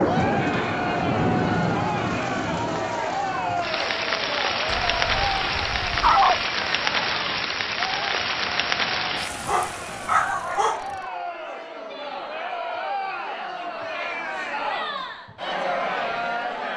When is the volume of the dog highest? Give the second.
6 s.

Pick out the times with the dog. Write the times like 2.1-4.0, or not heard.
4.7-6.4, 9.4-10.9.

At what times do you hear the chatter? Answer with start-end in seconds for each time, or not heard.
0.0-16.7.